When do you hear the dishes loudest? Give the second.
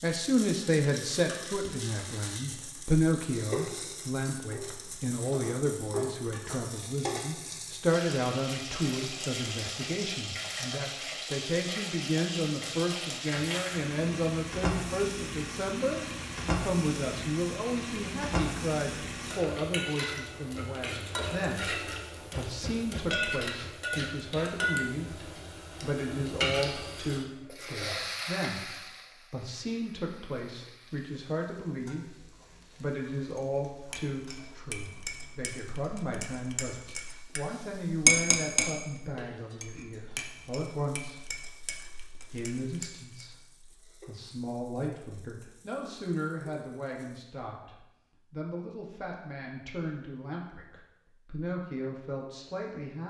38 s.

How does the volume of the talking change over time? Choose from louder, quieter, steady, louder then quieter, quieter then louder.
quieter.